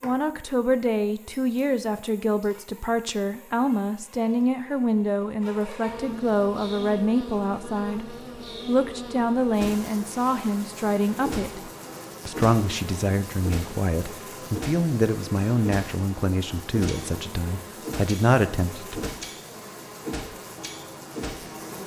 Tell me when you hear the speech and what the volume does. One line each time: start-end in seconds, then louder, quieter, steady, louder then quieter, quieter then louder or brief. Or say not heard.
0.0-19.1 steady.